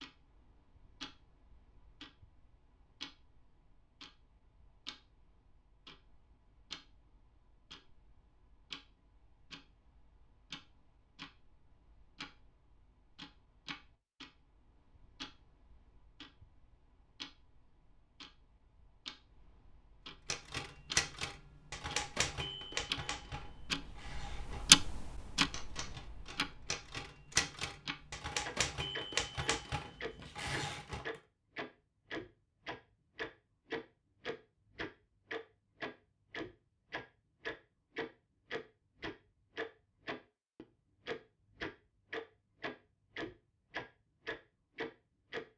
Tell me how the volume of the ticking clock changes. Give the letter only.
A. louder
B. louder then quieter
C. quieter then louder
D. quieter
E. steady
B.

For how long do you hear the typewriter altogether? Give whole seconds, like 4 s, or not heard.
11 s.